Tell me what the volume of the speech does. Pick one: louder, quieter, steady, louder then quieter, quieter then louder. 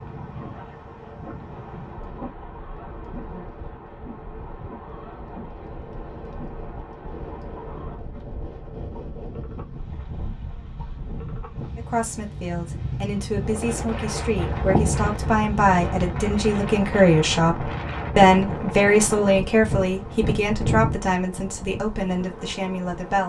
louder then quieter.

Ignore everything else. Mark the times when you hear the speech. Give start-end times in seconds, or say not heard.
11.8-23.2.